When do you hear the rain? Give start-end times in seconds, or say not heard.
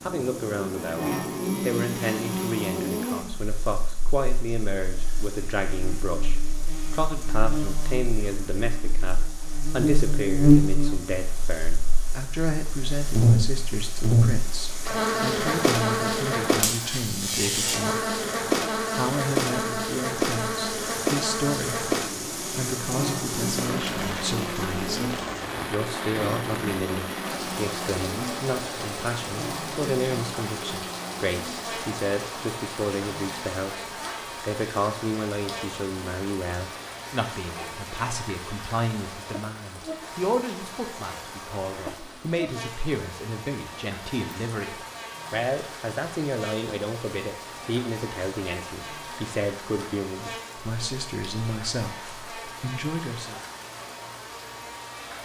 0.0-55.1.